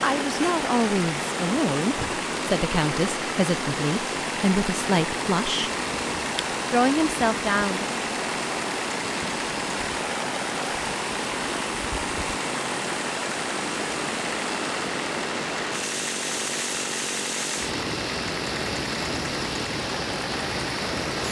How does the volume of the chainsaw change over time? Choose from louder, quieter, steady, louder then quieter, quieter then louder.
steady.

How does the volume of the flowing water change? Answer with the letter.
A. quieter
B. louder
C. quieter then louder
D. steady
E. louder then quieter
D.